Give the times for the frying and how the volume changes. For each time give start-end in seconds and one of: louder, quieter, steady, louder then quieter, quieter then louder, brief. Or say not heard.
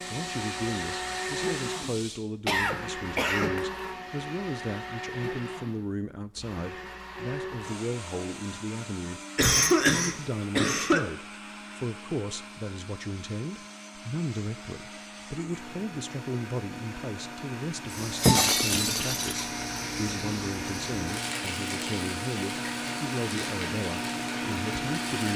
0.0-2.2 brief
17.9-25.3 quieter.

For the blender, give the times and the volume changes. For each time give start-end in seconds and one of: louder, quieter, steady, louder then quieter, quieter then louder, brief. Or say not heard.
0.0-25.3 quieter then louder.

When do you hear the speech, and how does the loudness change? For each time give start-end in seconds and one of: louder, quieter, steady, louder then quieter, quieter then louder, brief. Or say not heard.
0.1-25.3 steady.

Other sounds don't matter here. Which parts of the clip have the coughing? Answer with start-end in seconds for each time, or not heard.
2.5-3.5, 9.3-11.1, 18.7-19.3.